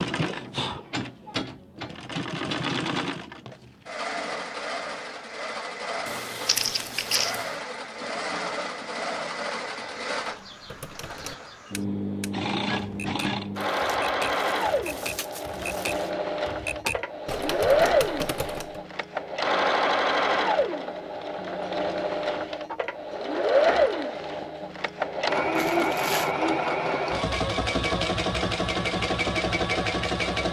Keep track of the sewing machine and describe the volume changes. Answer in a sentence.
The loudness of the sewing machine goes up.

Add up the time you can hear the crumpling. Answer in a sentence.
The crumpling can be heard for 4 seconds in total.